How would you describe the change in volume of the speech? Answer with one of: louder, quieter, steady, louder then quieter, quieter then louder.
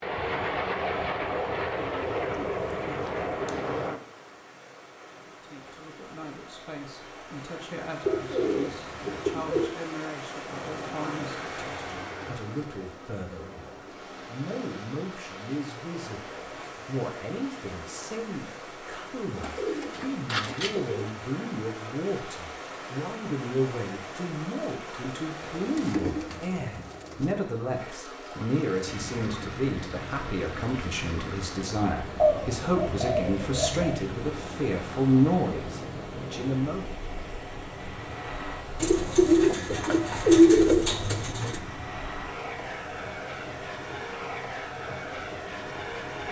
louder.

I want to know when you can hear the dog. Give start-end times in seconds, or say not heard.
not heard.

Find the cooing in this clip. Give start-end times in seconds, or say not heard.
1.8-4.0, 8.1-9.7, 19.4-21.1, 25.4-27.4, 32.1-34.0, 38.8-41.6.